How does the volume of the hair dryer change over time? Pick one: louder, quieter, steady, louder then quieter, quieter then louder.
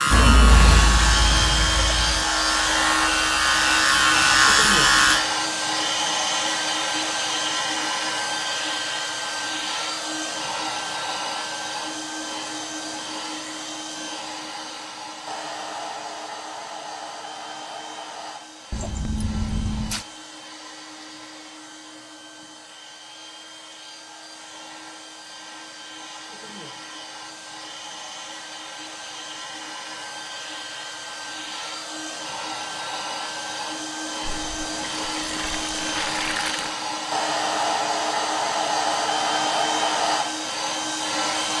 quieter then louder.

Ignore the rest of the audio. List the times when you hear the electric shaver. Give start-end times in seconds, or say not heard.
0.0-5.2.